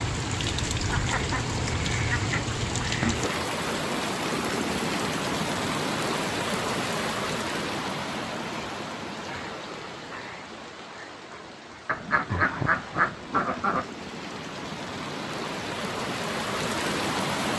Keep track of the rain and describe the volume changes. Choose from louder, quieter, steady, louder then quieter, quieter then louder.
quieter then louder.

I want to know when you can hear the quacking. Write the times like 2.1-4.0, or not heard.
0.8-3.1, 11.8-13.8.